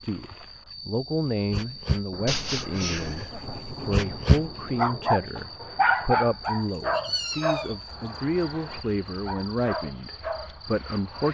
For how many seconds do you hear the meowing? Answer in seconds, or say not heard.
4 s.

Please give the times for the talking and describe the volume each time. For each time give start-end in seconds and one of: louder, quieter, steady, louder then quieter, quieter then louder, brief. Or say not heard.
0.0-11.2 steady.